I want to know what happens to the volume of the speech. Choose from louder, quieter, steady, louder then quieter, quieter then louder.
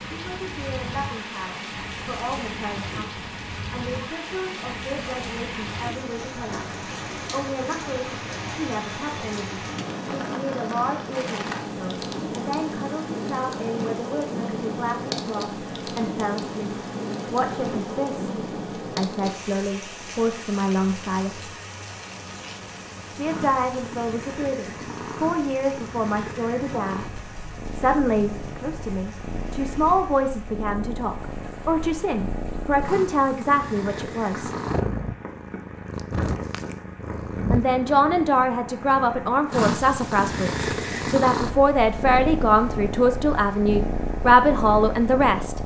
louder.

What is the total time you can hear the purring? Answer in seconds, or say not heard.
23 s.